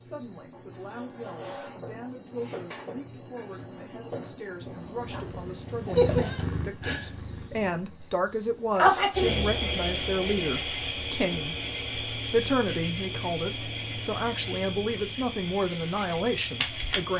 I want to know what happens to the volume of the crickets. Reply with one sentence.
The volume of the crickets goes up, then down.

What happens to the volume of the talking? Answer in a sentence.
The loudness of the talking goes up.